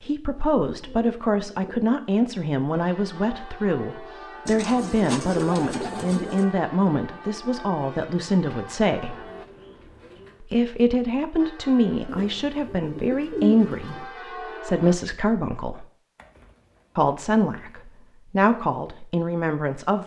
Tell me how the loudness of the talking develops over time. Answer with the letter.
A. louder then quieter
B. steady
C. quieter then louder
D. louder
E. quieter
B.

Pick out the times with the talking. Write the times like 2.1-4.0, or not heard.
0.0-9.2, 10.4-15.8, 16.9-20.0.